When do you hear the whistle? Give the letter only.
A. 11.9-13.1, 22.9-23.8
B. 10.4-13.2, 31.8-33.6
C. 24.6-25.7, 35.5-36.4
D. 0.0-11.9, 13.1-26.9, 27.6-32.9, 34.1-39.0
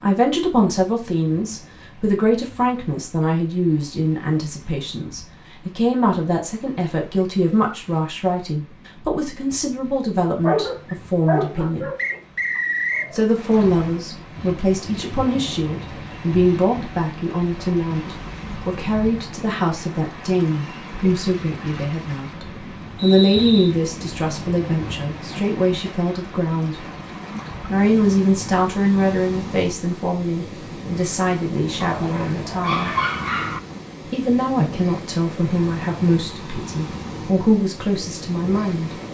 A.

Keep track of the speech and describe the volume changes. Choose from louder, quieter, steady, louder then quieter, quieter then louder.
steady.